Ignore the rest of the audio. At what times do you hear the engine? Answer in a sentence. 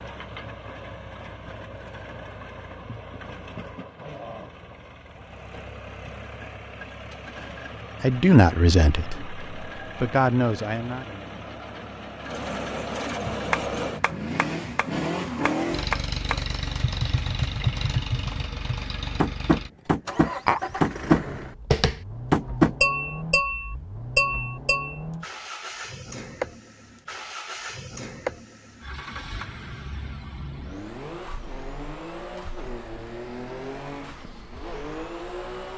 The engine can be heard from 0.0 to 35.7 s.